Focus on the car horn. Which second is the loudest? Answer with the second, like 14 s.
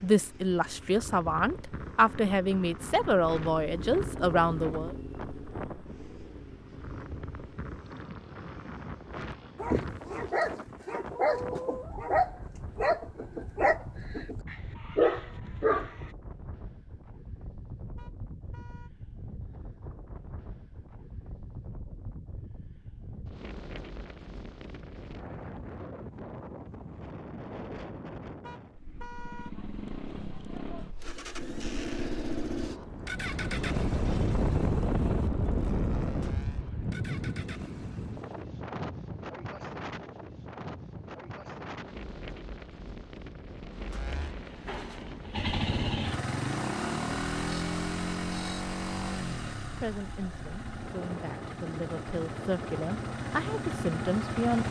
29 s.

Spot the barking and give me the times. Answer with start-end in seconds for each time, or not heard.
9.6-16.1.